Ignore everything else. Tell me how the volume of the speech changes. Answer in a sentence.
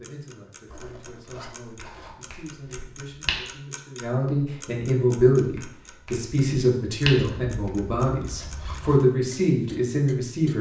The volume of the speech goes up.